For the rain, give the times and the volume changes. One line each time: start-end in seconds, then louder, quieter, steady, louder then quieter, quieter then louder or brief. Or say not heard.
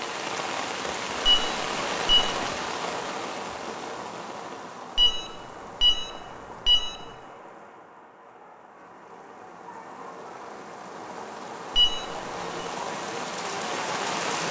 0.0-14.4 quieter then louder.